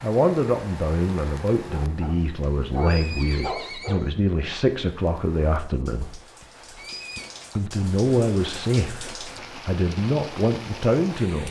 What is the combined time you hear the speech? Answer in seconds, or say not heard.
10 s.